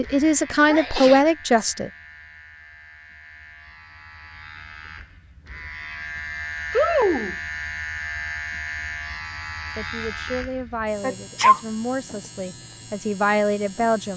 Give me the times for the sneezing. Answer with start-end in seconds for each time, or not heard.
0.7-1.2, 6.7-7.3, 11.0-11.6.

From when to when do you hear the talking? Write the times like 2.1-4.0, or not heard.
0.0-1.9, 9.8-14.1.